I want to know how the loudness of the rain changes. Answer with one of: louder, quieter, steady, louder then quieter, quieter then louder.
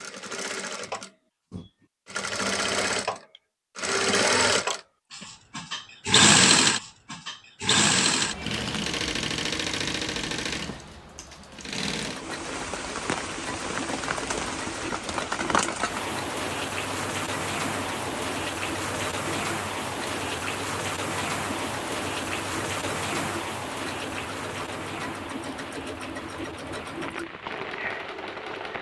quieter.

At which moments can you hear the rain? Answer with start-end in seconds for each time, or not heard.
12.0-28.7.